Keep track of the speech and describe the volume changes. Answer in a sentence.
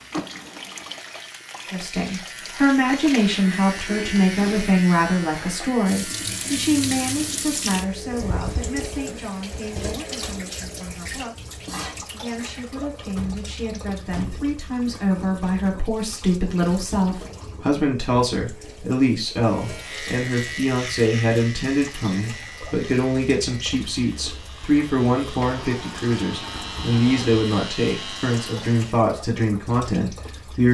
The volume of the speech goes down, then up.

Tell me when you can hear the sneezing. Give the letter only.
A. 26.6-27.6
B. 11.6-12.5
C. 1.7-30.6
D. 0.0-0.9
B.